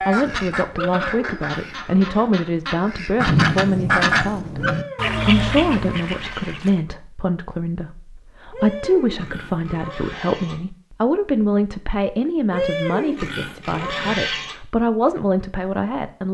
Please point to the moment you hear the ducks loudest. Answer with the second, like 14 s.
4 s.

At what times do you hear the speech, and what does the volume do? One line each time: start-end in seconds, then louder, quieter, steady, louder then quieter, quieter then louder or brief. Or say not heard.
0.1-16.3 steady.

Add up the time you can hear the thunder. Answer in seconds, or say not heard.
2 s.